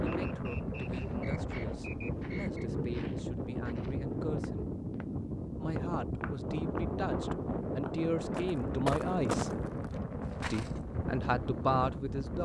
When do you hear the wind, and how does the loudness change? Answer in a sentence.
The wind can be heard from 0.0 to 12.4 s, at a steady volume.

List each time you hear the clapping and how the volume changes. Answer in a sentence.
You can't hear the clapping here.